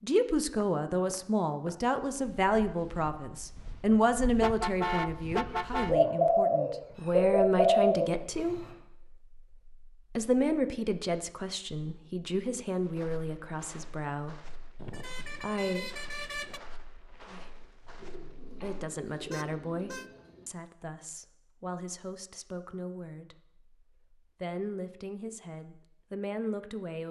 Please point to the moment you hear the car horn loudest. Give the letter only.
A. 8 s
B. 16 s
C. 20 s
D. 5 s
D.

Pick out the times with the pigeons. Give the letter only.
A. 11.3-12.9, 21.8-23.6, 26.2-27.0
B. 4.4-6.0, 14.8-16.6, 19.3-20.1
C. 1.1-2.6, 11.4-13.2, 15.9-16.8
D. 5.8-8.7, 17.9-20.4
D.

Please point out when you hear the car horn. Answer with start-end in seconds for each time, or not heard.
4.4-6.0, 14.8-16.6, 19.3-20.1.